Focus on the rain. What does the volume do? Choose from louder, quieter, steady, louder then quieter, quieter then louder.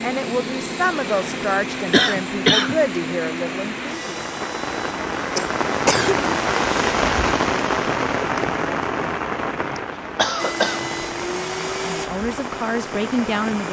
louder then quieter.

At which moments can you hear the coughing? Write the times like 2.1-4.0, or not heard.
1.9-2.8, 5.3-6.2, 9.8-10.9.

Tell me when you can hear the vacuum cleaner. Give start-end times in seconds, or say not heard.
0.0-7.0, 10.3-13.6.